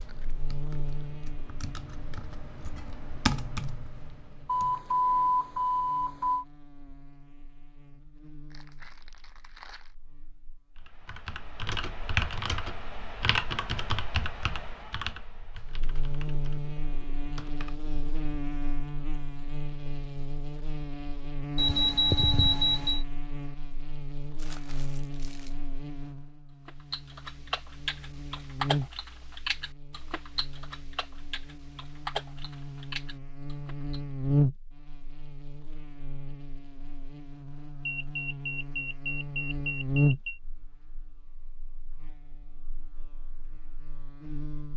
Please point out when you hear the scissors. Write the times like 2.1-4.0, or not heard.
not heard.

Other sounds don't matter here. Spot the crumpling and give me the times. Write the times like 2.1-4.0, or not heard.
8.5-9.9, 24.4-25.6.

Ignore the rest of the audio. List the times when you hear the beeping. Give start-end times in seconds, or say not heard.
4.5-6.5, 21.6-23.0, 37.9-40.4.